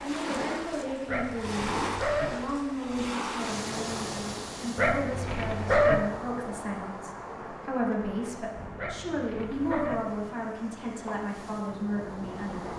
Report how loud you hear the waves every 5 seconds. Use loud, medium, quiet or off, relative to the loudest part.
loud, medium, medium.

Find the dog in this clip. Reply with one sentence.
The dog can be heard from 1.1 to 2.3 s, from 4.8 to 6.0 s and from 8.8 to 9.9 s.